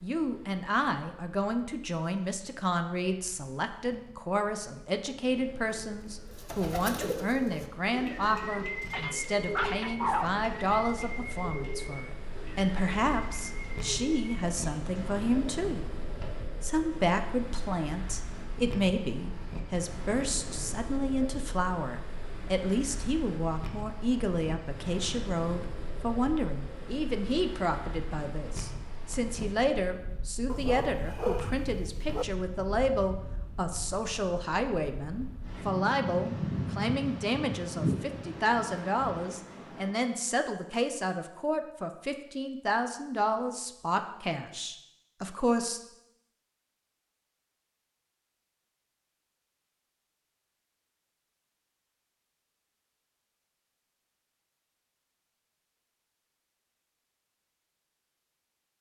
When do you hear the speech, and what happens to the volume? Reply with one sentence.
The speech can be heard from 0.0 to 15.9 s, at a steady volume; and from 16.6 to 45.8 s, at a steady volume.